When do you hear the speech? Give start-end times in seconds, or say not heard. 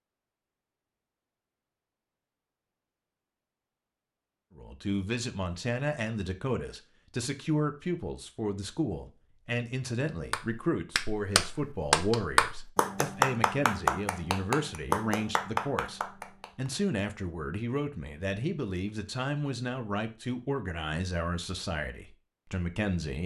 4.5-23.2.